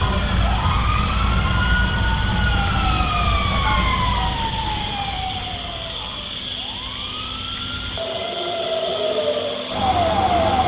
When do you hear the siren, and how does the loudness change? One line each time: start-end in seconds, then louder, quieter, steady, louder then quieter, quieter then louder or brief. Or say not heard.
0.0-10.6 quieter then louder.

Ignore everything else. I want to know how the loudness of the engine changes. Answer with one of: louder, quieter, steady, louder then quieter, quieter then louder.
steady.